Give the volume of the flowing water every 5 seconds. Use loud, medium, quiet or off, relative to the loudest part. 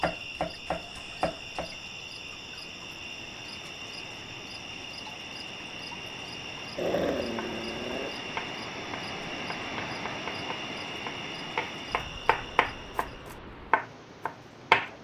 medium, loud, loud.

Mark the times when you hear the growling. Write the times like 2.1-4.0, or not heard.
6.8-8.2.